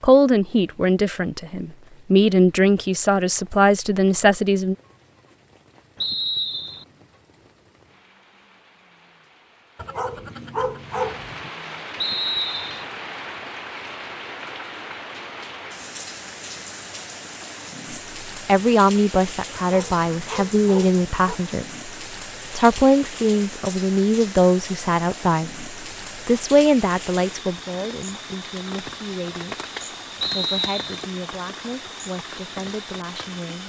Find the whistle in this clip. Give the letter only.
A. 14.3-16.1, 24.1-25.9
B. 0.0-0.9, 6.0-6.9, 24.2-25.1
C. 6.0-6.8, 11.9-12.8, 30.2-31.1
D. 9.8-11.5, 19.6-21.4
C.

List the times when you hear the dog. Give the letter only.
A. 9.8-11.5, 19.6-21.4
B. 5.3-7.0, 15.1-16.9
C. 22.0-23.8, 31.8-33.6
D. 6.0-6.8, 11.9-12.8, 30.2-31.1
A.